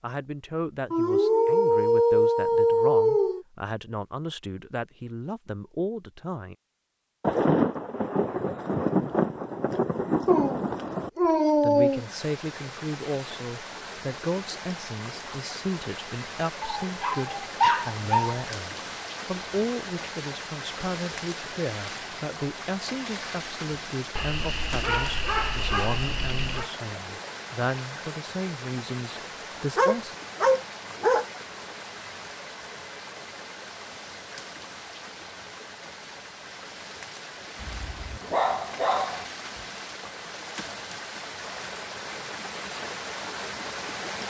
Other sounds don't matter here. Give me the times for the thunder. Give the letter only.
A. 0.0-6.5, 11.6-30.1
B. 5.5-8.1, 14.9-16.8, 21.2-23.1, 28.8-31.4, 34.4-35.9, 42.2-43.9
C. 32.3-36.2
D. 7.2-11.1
D.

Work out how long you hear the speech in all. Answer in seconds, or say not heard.
25 s.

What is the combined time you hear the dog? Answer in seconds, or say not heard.
12 s.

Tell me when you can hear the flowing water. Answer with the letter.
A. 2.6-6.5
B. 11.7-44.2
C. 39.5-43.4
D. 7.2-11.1
B.